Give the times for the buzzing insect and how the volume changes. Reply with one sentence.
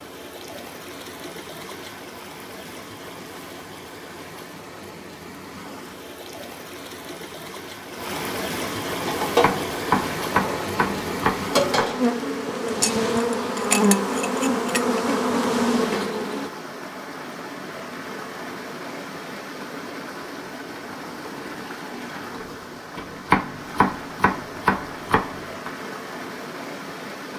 You can hear the buzzing insect from 9.0 to 16.5 s, getting louder.